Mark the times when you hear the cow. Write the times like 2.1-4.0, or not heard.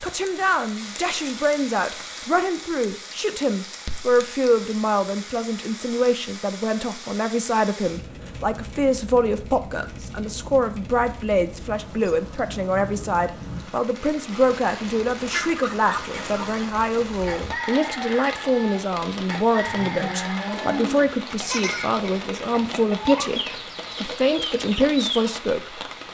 19.6-21.1.